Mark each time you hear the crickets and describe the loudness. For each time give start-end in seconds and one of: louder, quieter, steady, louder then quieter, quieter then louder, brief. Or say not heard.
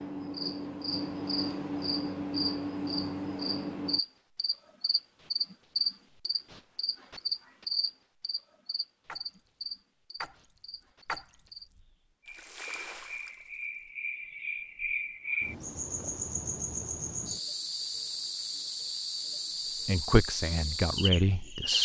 0.0-21.7 quieter then louder.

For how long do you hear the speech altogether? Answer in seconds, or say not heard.
2 s.